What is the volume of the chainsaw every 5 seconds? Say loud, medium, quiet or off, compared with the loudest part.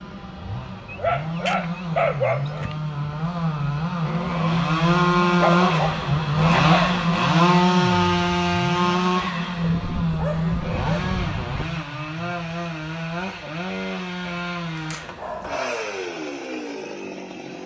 medium, loud, medium, quiet.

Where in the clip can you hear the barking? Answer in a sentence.
The barking can be heard from 0.8 to 2.8 s, from 5.4 to 7.0 s, from 9.6 to 11.7 s and from 14.8 to 16.0 s.